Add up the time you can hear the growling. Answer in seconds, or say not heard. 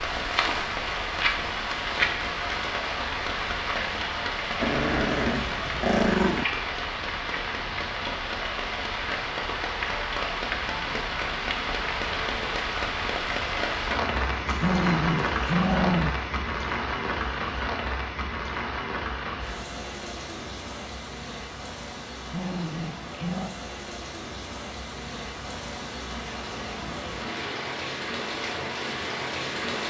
5 s.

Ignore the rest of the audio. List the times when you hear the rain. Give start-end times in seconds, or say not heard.
0.0-29.8.